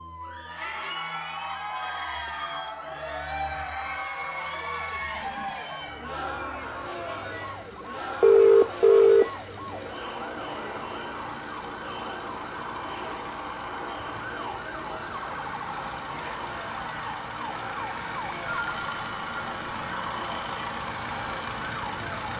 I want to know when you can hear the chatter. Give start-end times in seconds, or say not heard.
0.1-22.3.